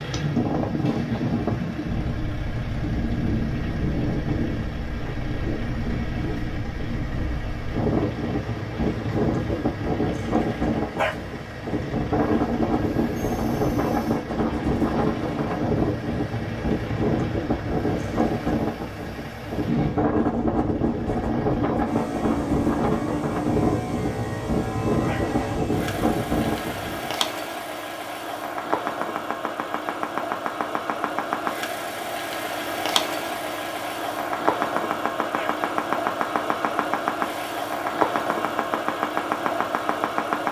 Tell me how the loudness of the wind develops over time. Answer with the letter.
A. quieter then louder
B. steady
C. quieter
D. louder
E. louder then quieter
B.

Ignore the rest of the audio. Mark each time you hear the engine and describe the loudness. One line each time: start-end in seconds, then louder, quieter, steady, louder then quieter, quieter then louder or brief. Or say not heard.
0.0-40.4 louder.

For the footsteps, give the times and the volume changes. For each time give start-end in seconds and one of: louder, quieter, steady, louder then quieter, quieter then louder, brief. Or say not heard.
not heard.